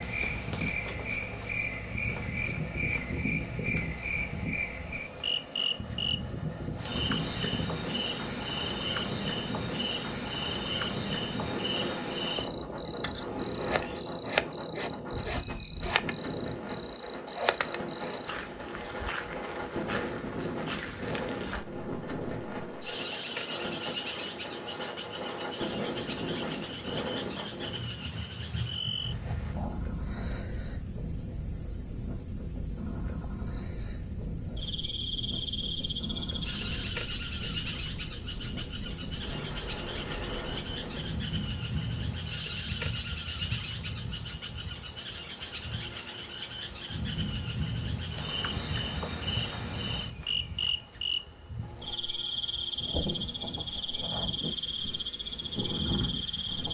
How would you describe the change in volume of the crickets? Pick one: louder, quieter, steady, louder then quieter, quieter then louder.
steady.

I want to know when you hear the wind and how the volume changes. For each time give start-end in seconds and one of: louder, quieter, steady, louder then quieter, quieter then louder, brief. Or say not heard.
0.0-56.7 steady.